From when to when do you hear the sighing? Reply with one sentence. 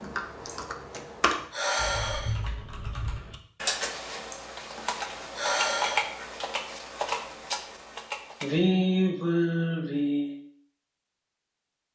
The sighing can be heard from 0.5 to 2.3 s, from 4.3 to 6.0 s and from 8.4 to 10.3 s.